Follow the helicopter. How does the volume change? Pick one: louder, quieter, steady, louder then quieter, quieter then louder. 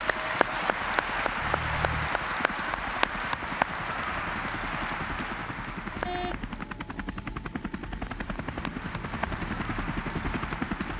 louder.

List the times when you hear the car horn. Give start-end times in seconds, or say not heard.
1.4-2.1, 6.0-6.5.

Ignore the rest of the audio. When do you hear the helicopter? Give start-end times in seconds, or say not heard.
0.0-10.9.